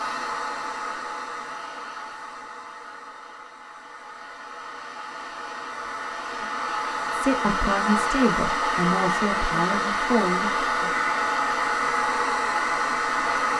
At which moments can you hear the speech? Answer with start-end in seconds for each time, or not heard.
7.1-10.9.